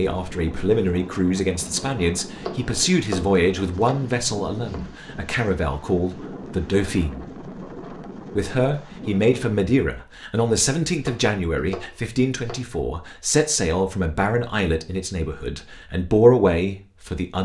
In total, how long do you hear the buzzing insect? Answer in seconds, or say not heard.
not heard.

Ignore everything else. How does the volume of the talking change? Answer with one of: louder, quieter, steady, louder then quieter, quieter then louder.
steady.